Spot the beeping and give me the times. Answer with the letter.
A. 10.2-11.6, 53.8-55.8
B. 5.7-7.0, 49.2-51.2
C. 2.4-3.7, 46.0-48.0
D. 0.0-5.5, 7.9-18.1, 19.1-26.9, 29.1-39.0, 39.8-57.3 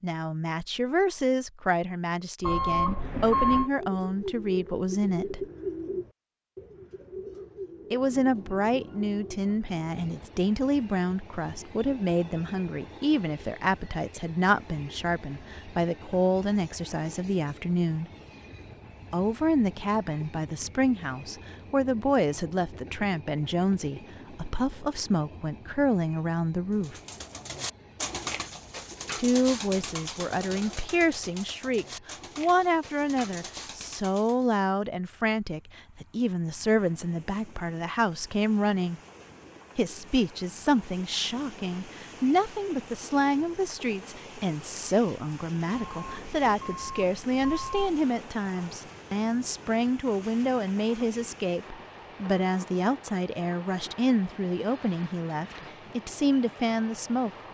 C.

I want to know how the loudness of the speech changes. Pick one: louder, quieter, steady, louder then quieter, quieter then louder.
steady.